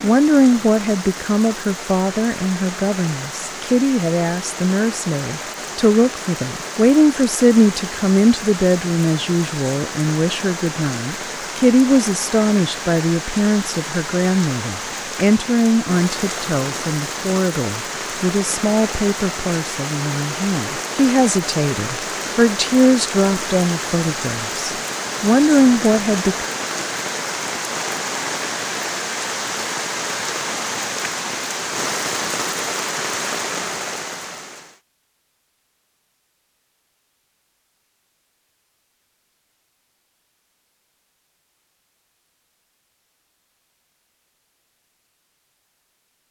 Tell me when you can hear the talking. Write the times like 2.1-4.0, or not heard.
0.0-26.5.